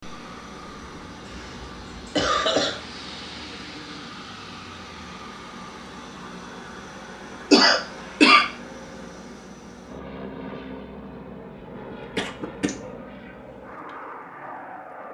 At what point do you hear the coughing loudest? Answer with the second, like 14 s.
8 s.